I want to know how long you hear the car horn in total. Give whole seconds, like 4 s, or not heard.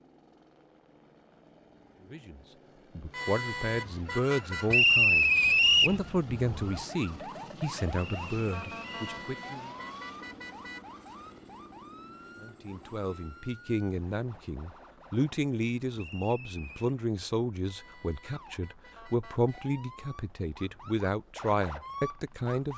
6 s.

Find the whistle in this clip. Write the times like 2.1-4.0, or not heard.
4.7-6.0, 8.0-9.2, 15.9-16.9.